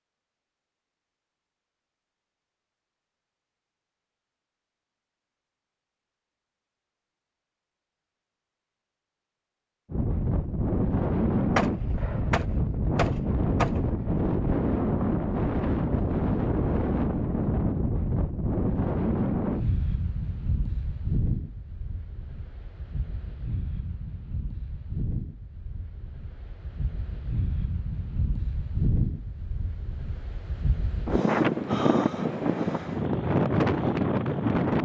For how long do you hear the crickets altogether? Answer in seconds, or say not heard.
not heard.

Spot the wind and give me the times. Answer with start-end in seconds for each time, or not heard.
9.9-34.7.